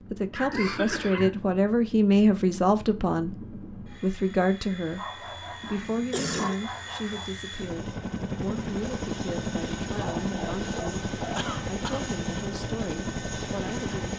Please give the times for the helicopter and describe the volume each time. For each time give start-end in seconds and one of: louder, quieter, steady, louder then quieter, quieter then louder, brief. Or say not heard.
0.0-14.1 louder.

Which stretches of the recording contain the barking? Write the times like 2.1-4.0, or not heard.
0.3-1.3, 5.0-7.3, 9.9-11.5.